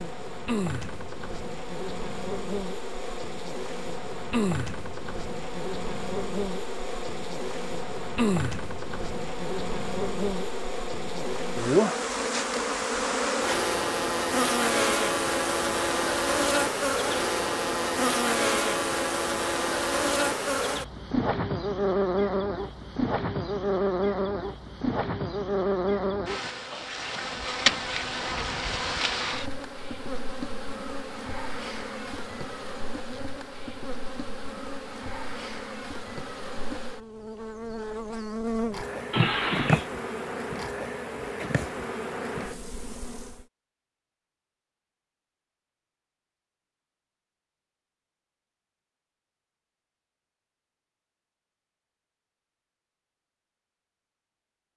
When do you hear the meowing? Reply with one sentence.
You can hear the meowing from 39.1 to 39.9 s.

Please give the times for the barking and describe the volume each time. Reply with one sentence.
The barking can't be heard in this clip.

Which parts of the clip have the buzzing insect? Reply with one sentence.
The buzzing insect can be heard from 0.0 to 43.5 s.